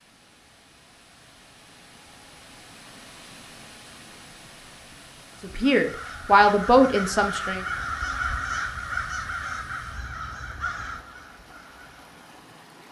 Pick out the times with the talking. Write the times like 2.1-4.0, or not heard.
5.4-7.6.